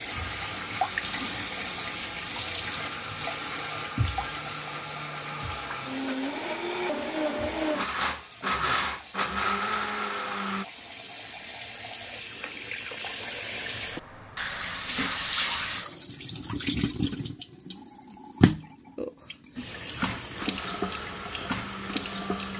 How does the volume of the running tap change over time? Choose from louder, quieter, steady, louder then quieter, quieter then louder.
quieter then louder.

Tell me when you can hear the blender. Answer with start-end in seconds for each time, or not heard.
0.0-10.7, 20.2-22.5.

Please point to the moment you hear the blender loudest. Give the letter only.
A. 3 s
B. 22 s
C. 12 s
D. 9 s
D.